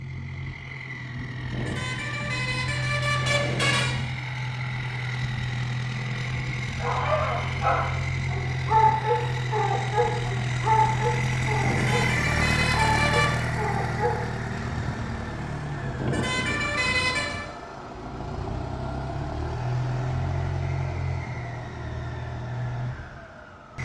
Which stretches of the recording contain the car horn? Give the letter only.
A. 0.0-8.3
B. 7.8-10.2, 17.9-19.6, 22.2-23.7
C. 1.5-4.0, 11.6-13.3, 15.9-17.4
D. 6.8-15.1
C.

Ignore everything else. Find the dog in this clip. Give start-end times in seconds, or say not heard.
6.8-15.1.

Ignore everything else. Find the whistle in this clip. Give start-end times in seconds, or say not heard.
not heard.